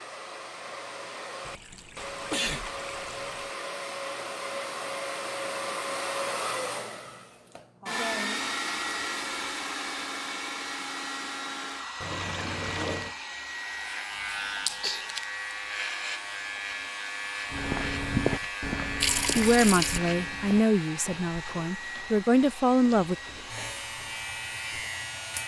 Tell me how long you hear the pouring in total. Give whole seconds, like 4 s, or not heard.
5 s.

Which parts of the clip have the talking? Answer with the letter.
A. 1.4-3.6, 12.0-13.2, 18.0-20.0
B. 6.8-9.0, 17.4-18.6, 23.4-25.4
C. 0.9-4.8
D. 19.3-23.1
D.